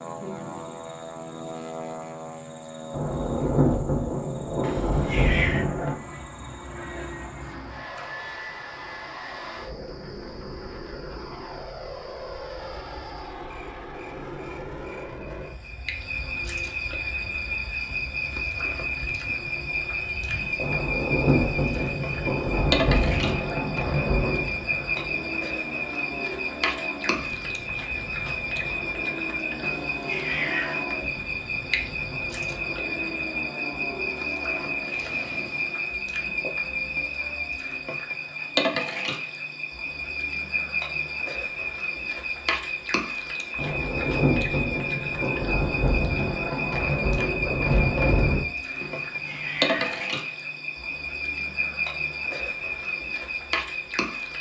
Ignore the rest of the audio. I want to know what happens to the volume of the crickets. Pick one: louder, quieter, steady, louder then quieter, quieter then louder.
louder.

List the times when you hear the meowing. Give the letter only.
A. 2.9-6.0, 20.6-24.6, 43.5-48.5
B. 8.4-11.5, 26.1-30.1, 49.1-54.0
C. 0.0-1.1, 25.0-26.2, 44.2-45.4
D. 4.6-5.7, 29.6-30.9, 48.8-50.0
D.